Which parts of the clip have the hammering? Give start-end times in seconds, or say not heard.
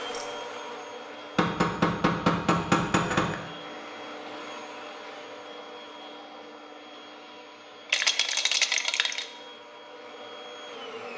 1.4-3.4.